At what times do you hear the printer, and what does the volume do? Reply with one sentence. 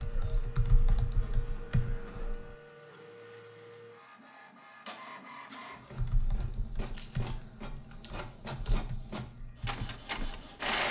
You can hear the printer from 0.0 to 10.8 s, getting louder.